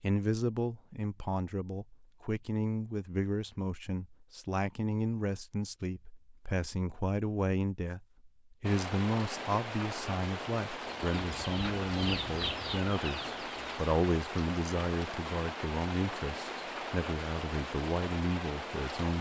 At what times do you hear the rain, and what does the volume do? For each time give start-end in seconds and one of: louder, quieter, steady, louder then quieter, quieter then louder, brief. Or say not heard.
8.6-19.1 steady.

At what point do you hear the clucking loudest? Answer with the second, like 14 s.
12 s.